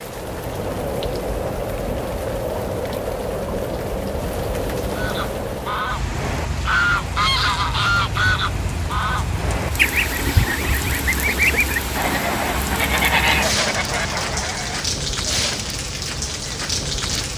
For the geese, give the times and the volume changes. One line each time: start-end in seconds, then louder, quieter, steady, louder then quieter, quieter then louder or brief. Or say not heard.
5.0-14.8 steady.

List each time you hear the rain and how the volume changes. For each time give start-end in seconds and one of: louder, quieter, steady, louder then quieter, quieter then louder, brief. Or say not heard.
0.0-17.3 steady.